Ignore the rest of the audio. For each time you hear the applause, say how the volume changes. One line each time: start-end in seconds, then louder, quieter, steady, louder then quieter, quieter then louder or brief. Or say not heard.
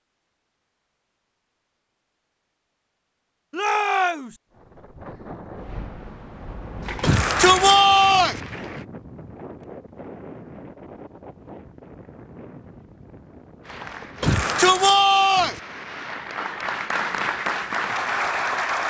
6.8-8.8 brief
13.7-18.8 louder.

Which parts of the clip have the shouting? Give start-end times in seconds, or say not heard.
3.5-4.4, 7.0-8.4, 14.2-15.6.